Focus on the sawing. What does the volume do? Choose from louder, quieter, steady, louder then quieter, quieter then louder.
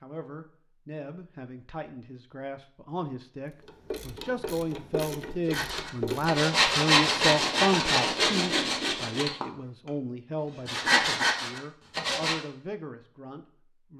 quieter then louder.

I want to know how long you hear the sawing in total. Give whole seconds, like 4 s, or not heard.
7 s.